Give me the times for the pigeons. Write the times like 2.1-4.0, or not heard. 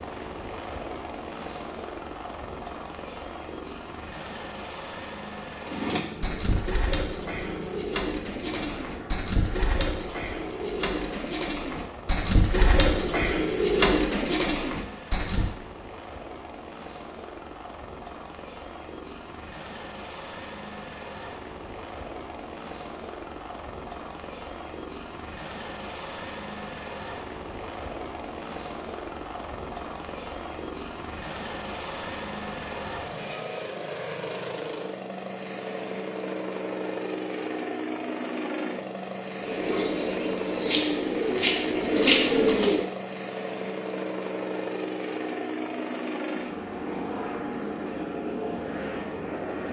5.7-15.6, 39.4-42.9.